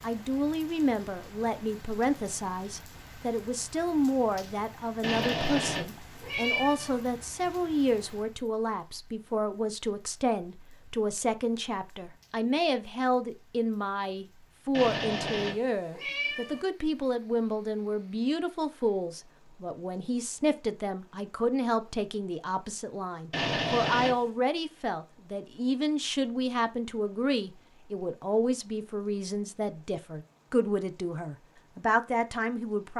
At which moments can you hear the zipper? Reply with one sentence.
You can't hear the zipper here.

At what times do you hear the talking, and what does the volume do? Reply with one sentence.
The talking can be heard from 0.0 to 32.9 s, at a steady volume.